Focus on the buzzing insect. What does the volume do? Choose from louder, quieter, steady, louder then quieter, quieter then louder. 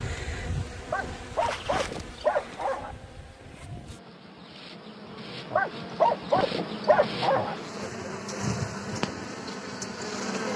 quieter then louder.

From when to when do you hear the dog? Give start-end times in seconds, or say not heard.
0.9-3.0, 5.5-7.5.